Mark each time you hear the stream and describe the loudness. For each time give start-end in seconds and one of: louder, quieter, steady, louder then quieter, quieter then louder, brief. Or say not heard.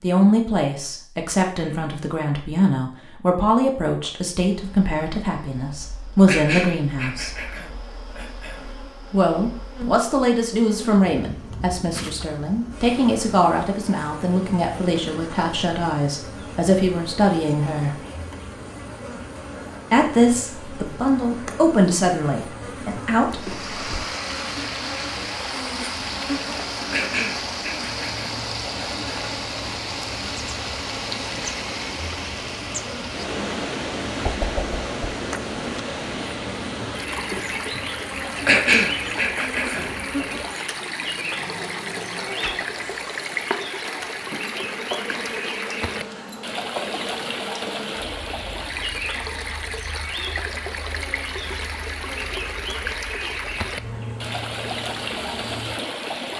23.3-56.3 steady.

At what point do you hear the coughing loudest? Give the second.
39 s.